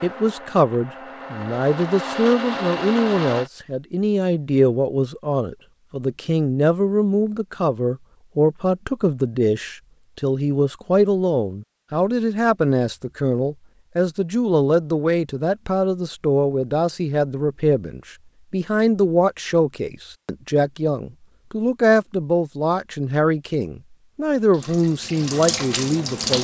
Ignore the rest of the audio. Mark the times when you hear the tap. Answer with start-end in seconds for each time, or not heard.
24.5-26.3.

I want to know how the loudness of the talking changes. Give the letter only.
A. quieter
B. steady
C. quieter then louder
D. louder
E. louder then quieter
B.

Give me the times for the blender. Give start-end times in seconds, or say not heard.
0.0-3.5.